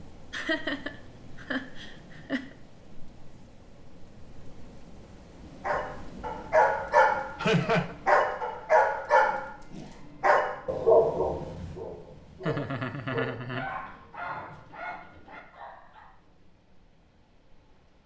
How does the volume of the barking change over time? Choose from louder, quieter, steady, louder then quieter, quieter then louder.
quieter.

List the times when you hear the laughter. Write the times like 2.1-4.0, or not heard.
0.3-2.4, 7.3-8.0, 12.4-13.7.